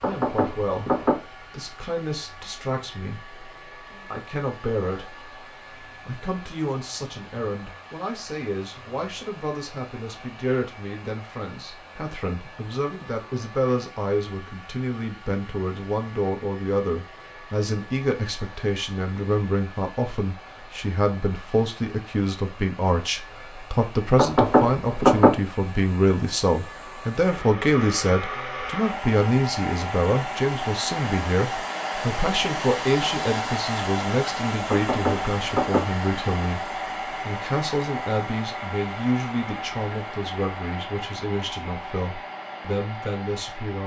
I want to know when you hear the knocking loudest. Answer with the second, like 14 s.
25 s.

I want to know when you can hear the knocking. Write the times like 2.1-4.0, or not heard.
0.0-1.1, 24.1-25.3, 34.7-35.8.